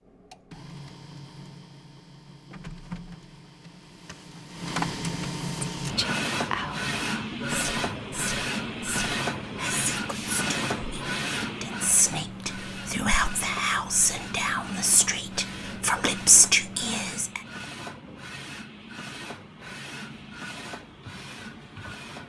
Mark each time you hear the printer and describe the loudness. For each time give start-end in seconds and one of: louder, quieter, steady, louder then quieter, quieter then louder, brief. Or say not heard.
0.0-22.2 louder then quieter.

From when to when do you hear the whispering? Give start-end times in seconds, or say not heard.
5.8-17.4.